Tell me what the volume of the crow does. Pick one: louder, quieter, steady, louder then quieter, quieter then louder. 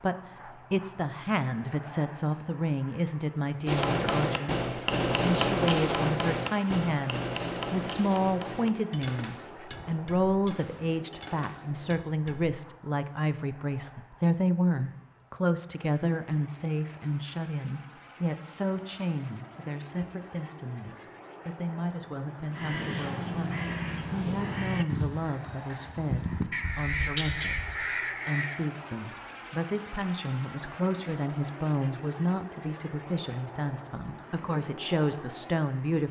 quieter then louder.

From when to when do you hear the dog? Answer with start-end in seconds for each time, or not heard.
not heard.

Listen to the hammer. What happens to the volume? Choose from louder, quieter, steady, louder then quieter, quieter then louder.
quieter.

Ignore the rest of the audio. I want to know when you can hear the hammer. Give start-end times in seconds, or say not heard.
3.6-12.6.